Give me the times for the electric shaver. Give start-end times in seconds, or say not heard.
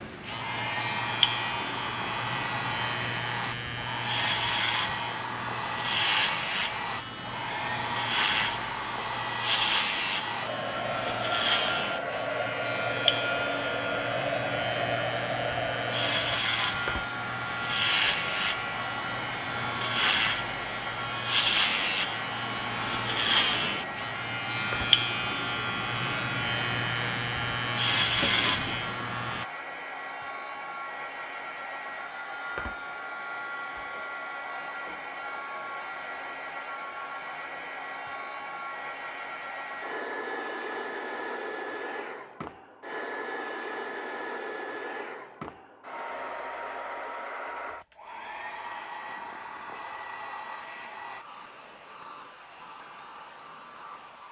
0.0-29.4.